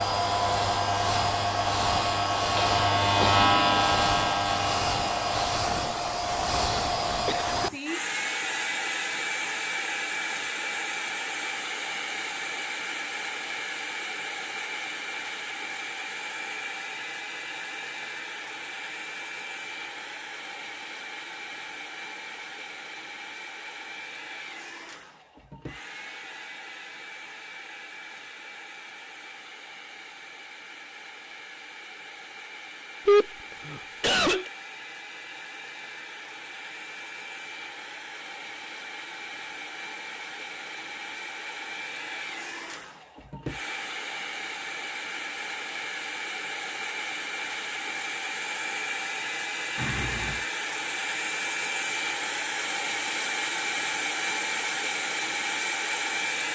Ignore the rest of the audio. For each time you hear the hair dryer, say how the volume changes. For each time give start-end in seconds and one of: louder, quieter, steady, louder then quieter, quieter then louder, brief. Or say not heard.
0.0-56.5 quieter then louder.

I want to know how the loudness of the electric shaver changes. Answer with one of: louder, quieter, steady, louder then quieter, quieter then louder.
louder then quieter.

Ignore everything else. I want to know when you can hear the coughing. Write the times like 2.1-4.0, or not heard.
7.2-7.8, 33.0-34.5, 49.8-50.5.